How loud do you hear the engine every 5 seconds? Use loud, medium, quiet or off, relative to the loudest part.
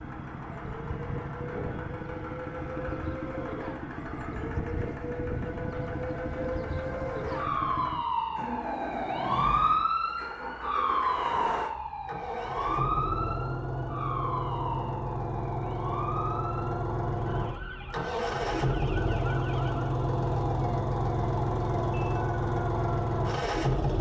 medium, medium, medium, loud, loud.